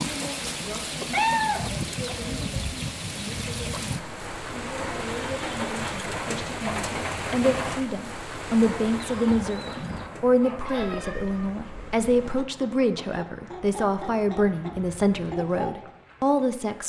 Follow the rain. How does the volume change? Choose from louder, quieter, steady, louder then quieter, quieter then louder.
quieter.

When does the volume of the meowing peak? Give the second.
1 s.